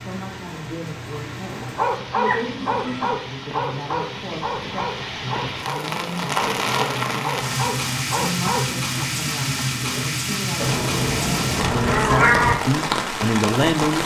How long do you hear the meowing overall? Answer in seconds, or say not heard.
3 s.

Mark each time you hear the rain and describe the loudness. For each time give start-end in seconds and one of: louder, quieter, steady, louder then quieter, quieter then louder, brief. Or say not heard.
0.0-14.0 louder.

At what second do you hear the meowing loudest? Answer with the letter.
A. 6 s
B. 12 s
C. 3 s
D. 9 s
B.